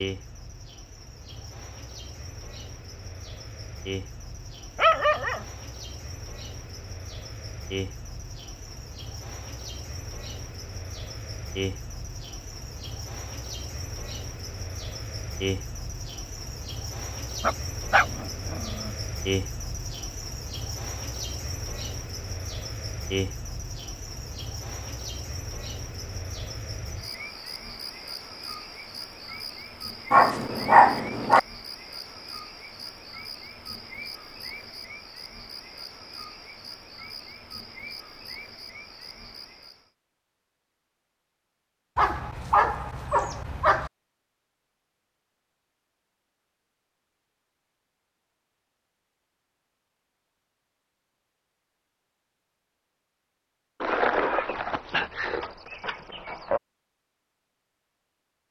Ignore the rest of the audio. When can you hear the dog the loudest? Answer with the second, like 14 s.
31 s.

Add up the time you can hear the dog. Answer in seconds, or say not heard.
8 s.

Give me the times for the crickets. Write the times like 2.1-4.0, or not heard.
0.0-39.9.